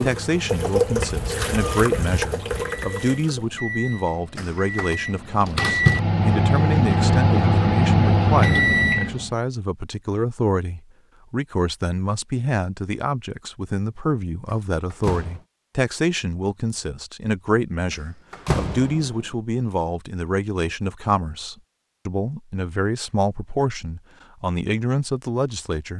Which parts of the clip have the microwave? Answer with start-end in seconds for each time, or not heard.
0.0-9.3.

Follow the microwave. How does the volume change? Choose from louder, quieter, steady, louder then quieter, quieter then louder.
louder.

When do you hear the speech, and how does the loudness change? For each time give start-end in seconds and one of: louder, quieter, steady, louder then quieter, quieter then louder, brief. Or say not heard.
0.0-25.9 steady.